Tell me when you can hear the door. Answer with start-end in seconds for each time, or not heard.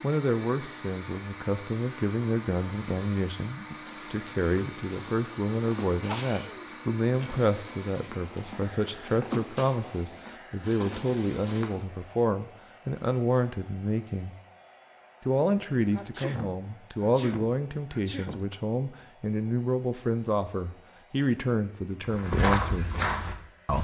not heard.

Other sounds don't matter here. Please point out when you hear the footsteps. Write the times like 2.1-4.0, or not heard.
3.7-11.8, 22.0-23.7.